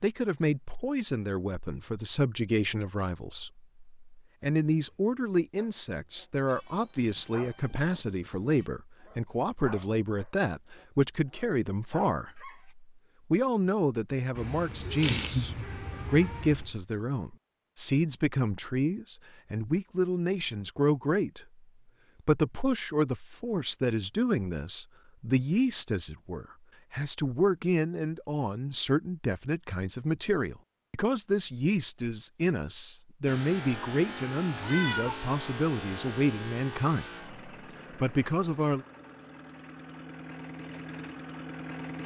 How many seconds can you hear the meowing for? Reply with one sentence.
The meowing can be heard for 5 seconds in total.